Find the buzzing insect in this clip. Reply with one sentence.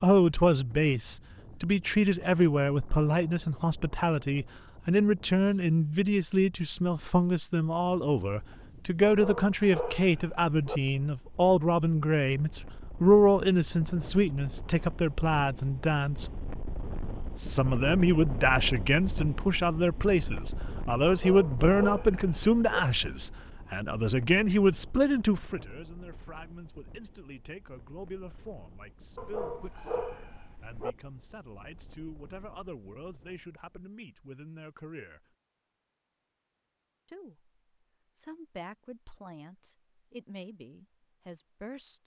The buzzing insect can't be heard in this clip.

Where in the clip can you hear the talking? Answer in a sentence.
You can hear the talking from 0.0 to 16.3 s, from 17.4 to 35.2 s, from 37.0 to 37.5 s and from 38.1 to 42.0 s.